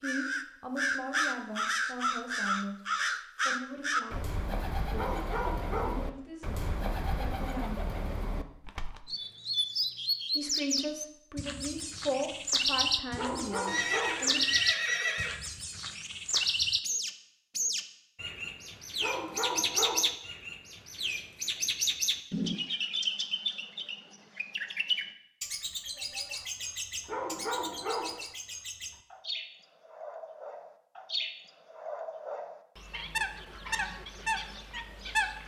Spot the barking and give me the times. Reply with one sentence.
You can hear the barking from 5.0 to 6.0 s, from 13.2 to 14.3 s, from 19.0 to 20.1 s and from 27.1 to 28.2 s.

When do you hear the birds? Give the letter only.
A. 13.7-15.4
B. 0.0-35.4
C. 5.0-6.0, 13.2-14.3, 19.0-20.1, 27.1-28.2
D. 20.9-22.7
B.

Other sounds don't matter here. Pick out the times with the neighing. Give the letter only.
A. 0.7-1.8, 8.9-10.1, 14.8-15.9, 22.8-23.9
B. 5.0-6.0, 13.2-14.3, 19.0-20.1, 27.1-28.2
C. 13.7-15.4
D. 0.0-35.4
C.